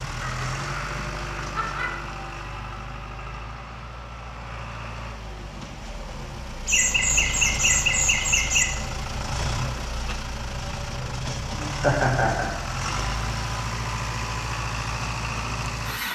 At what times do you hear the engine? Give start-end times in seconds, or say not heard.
0.0-16.1.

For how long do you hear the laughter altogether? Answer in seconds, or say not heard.
5 s.